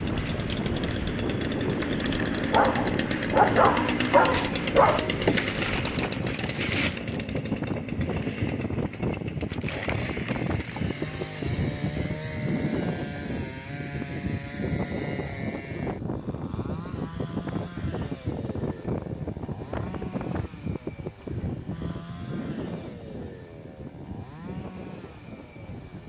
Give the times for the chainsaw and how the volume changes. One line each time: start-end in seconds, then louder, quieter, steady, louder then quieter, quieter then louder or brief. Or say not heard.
0.0-26.0 quieter.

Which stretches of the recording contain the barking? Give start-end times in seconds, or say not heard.
2.5-5.1.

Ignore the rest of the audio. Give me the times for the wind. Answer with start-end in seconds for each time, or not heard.
0.0-26.0.